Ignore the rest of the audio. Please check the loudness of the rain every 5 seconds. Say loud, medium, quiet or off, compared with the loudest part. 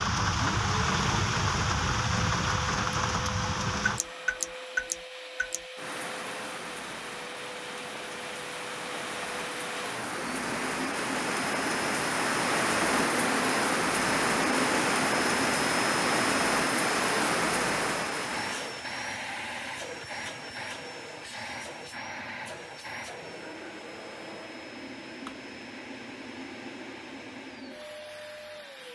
loud, medium, loud, loud, off, off.